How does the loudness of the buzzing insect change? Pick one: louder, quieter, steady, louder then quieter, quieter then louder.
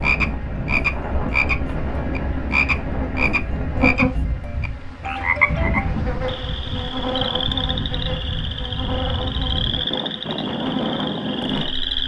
louder then quieter.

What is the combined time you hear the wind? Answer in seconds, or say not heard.
12 s.